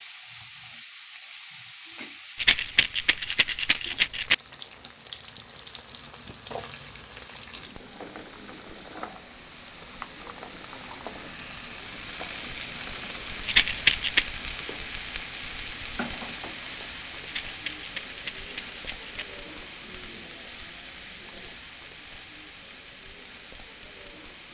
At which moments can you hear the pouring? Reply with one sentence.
You can't hear the pouring here.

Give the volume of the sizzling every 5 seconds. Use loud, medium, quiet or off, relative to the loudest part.
medium, medium, loud, loud, medium.